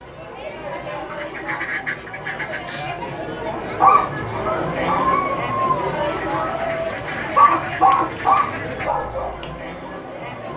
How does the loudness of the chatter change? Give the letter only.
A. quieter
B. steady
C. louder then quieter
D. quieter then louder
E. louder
C.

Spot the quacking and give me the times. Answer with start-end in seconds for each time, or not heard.
1.1-2.9, 6.2-8.9.